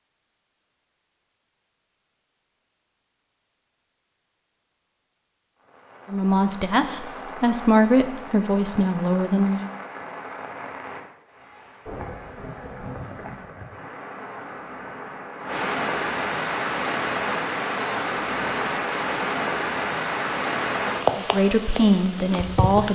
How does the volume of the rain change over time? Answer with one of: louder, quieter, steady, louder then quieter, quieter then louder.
louder.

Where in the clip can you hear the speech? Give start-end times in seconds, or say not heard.
6.1-9.7, 21.1-22.9.